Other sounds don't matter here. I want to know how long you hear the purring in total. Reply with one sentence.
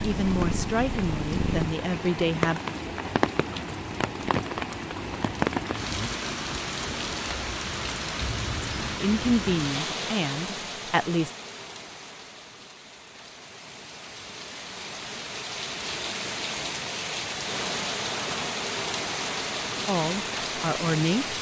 The purring can be heard for 2 seconds in total.